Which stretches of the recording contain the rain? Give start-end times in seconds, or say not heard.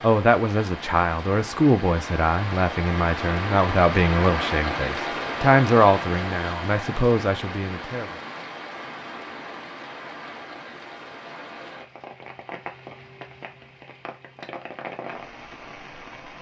0.0-16.3.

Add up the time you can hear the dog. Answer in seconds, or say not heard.
not heard.